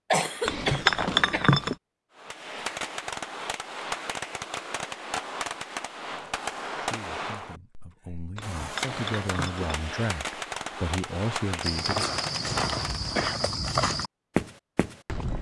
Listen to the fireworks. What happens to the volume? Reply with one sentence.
The loudness of the fireworks stays about the same.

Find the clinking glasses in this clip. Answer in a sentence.
You can hear the clinking glasses from 0.5 to 1.8 s and from 8.3 to 9.7 s.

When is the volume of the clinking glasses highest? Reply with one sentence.
The loudest moment of the clinking glasses is at 1 second.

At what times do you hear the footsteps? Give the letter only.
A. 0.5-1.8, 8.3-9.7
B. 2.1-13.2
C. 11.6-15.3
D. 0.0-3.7
C.